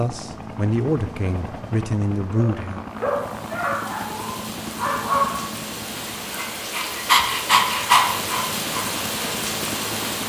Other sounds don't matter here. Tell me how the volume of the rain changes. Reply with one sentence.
The volume of the rain goes up.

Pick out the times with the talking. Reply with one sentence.
The talking can be heard from 0.0 to 2.9 s.